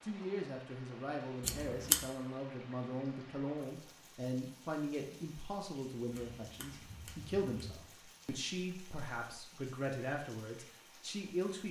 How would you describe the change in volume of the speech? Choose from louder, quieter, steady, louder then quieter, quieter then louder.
steady.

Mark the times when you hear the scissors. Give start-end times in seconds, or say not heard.
1.4-2.0, 6.1-7.8.